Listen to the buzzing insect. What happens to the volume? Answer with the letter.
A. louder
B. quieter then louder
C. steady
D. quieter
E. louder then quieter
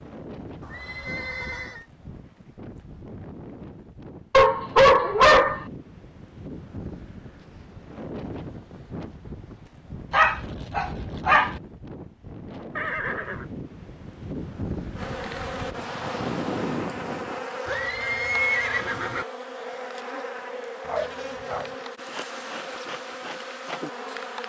C.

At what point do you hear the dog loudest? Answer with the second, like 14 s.
5 s.